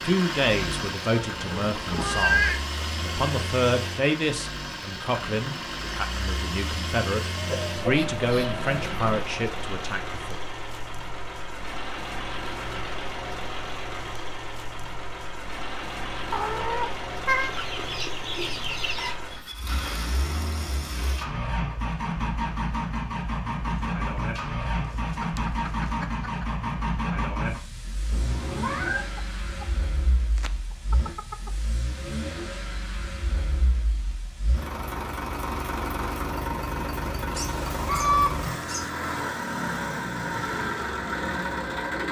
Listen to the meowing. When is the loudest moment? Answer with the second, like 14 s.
2 s.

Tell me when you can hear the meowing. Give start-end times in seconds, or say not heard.
1.1-2.6, 16.3-17.5, 28.1-29.1.